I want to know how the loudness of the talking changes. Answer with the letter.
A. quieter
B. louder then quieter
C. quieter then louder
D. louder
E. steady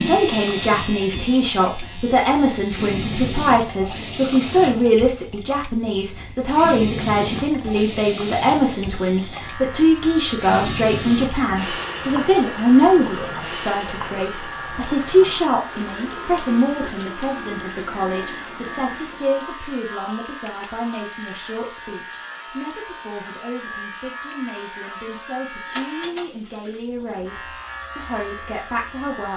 A.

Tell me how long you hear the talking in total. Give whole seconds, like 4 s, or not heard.
29 s.